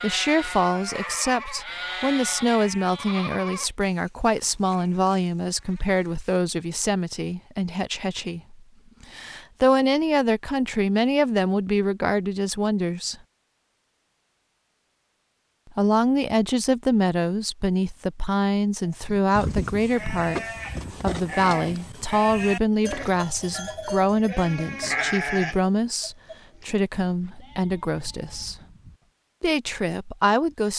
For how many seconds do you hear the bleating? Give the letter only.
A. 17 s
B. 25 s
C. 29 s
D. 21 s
A.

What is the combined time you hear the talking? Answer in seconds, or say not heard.
27 s.